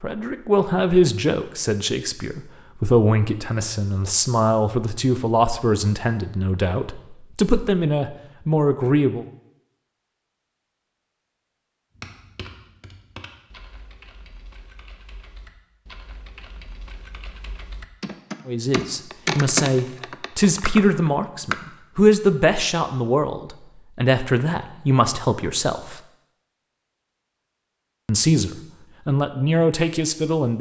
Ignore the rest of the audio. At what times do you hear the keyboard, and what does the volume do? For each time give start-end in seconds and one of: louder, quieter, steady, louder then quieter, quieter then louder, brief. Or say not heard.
11.9-21.6 quieter then louder.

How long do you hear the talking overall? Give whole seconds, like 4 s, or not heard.
19 s.